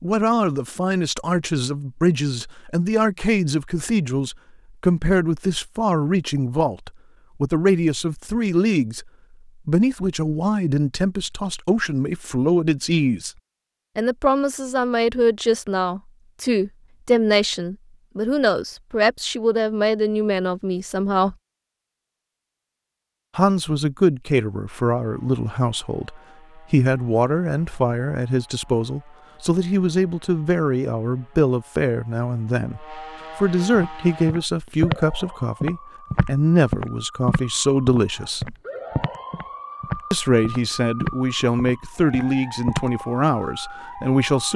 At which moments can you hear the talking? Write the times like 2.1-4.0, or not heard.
0.0-13.3, 13.9-21.4, 23.4-38.5, 40.1-44.5.